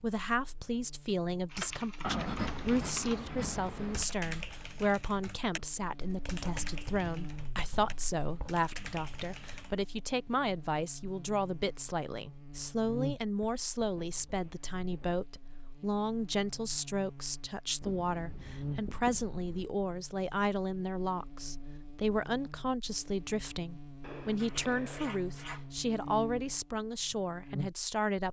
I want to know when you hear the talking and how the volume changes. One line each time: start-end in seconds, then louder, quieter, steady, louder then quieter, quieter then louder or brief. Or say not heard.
0.0-28.2 steady.